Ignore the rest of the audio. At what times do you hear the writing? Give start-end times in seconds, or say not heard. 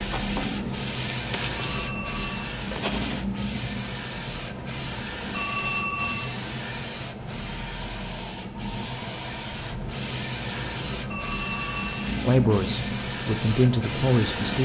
0.0-3.5.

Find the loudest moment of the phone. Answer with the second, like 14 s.
6 s.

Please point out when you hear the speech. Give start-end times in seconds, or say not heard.
12.2-14.6.